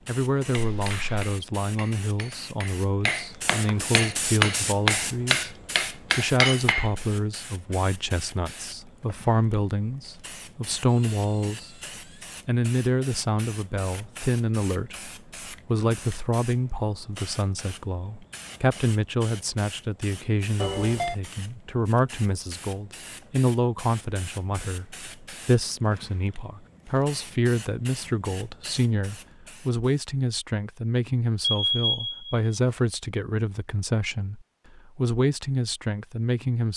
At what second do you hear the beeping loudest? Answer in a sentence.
The volume of the beeping peaks at 32 seconds.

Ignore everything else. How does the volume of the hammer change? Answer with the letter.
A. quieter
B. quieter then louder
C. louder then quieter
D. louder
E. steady
D.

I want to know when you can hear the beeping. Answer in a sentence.
You can hear the beeping from 0.6 to 1.3 s, from 20.6 to 21.1 s and from 31.4 to 32.8 s.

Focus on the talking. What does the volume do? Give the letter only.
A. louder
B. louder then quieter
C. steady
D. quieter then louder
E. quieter
C.